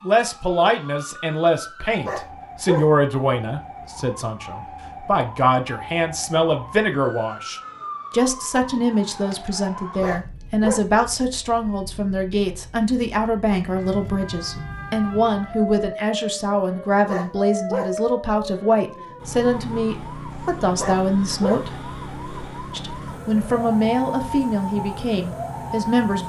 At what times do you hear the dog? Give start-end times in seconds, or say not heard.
2.0-2.9, 10.0-10.8, 17.1-17.9, 20.8-21.6.